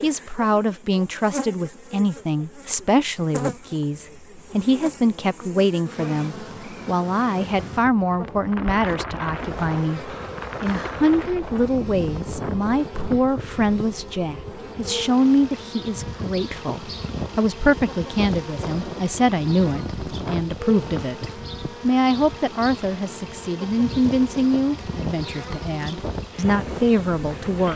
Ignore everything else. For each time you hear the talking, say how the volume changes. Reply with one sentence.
The talking can be heard from 0.0 to 27.7 s, at a steady volume.